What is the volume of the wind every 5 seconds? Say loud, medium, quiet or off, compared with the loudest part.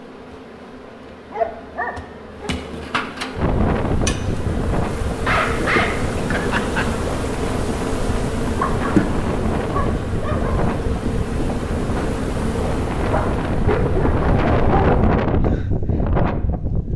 loud, medium, loud, loud.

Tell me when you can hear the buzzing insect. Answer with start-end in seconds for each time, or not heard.
0.0-15.2.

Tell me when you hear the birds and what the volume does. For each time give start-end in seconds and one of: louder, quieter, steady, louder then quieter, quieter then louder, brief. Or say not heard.
not heard.